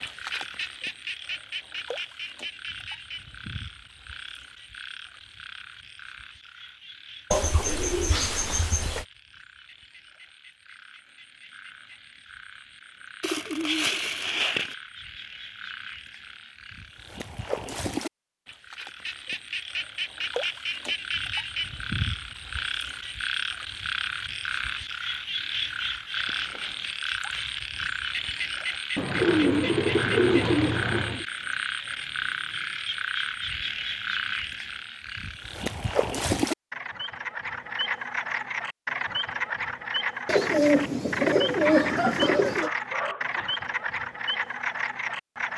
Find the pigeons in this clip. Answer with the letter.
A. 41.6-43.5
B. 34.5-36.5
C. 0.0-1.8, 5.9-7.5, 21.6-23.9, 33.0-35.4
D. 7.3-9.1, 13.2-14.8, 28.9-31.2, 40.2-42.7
D.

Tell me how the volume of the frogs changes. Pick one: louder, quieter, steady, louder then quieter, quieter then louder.
louder.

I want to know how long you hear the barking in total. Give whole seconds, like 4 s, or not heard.
2 s.